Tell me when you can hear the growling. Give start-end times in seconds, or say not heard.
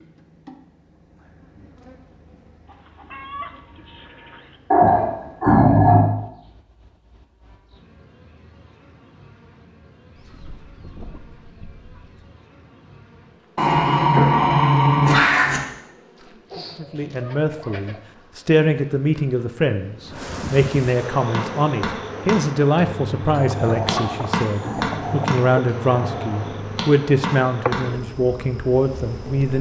4.7-6.1, 13.6-15.6, 23.9-26.6.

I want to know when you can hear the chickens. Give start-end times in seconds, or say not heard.
2.6-4.6, 10.2-12.2, 16.5-18.0, 23.3-25.3.